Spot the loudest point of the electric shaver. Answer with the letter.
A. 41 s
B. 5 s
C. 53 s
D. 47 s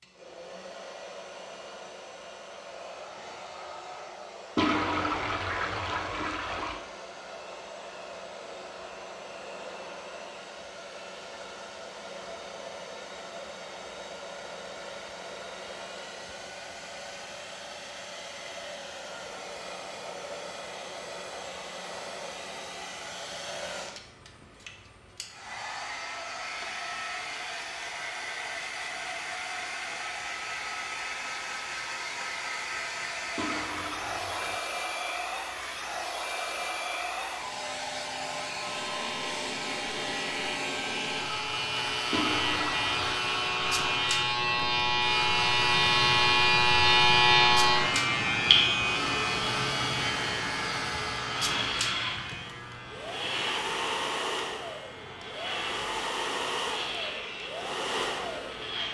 D.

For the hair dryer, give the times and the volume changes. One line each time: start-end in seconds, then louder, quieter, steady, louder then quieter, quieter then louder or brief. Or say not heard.
0.0-58.8 louder.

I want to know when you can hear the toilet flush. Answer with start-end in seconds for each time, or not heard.
4.5-6.8, 33.4-34.6, 42.1-43.1.